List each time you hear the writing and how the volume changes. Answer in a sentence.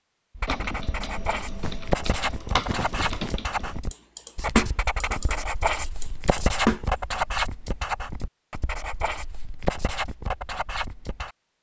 The writing can be heard from 0.3 to 11.3 s, at a steady volume.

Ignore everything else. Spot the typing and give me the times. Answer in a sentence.
The typing can be heard from 0.5 to 6.8 s.